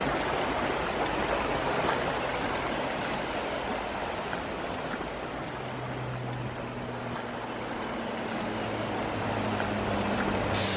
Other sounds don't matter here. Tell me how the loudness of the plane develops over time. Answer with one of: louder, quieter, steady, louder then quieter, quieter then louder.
louder.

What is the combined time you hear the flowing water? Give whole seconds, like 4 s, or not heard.
11 s.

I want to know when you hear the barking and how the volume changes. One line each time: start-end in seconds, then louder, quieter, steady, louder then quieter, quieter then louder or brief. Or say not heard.
not heard.